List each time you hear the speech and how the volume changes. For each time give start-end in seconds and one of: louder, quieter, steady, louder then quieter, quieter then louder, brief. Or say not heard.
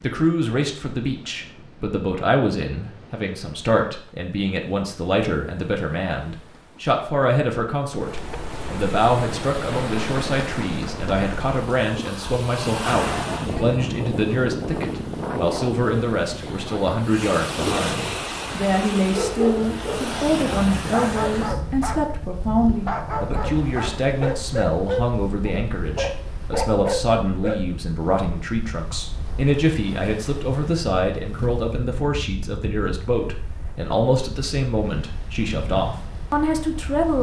0.0-37.1 steady.